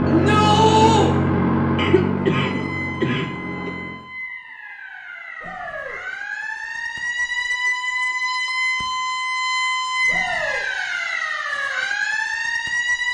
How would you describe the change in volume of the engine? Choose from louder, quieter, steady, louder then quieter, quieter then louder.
quieter.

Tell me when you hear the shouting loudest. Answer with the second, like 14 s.
1 s.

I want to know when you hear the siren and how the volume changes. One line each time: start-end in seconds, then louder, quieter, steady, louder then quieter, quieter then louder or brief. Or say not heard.
2.3-13.0 louder.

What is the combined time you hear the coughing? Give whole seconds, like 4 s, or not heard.
2 s.